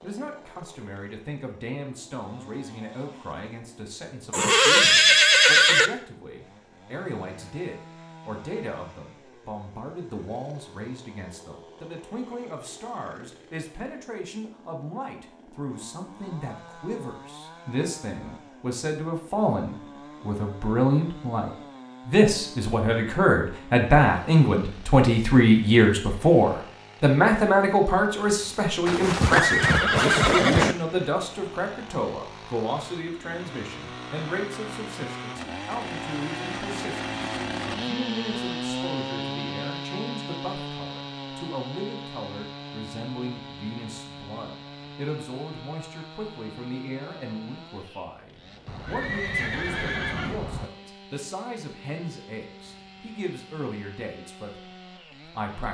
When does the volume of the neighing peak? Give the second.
5 s.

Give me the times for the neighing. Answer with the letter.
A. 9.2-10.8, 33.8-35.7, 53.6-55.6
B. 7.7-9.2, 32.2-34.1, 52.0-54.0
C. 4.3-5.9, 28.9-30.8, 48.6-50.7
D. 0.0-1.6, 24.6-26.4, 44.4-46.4
C.